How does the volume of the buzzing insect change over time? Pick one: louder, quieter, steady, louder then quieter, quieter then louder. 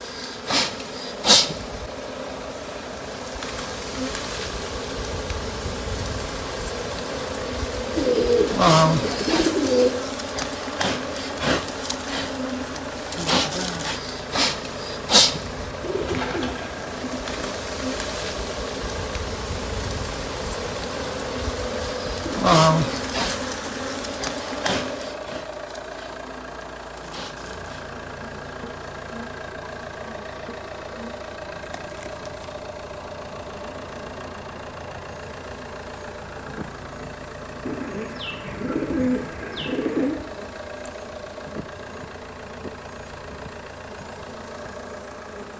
quieter.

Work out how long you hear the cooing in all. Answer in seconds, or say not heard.
6 s.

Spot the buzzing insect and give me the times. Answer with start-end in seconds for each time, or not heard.
0.0-45.5.